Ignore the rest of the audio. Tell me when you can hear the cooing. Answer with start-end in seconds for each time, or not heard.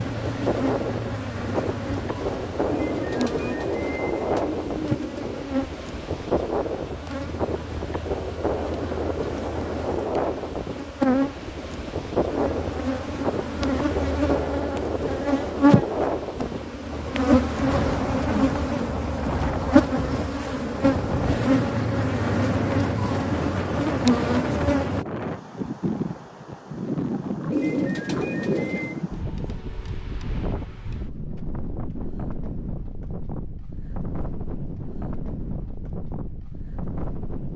2.6-5.5, 27.5-29.0.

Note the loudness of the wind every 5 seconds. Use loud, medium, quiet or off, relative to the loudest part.
loud, loud, loud, loud, loud, loud, medium, medium.